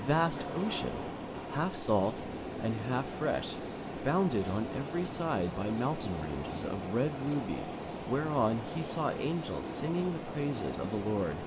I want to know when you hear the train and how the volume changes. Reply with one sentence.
You can hear the train from 0.0 to 11.4 s, at a steady volume.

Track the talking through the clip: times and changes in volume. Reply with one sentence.
The talking can be heard from 0.0 to 11.4 s, at a steady volume.